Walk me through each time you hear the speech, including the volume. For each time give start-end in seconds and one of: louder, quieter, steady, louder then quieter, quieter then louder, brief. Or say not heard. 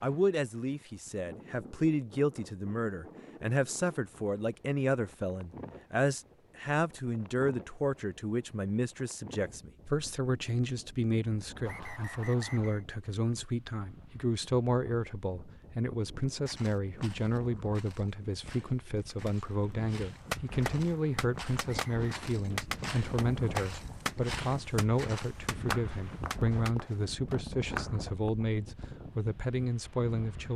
0.0-30.5 steady.